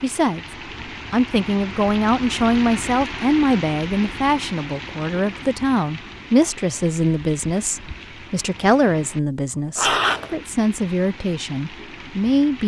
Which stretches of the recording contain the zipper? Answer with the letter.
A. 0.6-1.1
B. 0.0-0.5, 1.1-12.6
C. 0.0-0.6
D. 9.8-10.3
D.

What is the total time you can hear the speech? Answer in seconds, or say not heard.
12 s.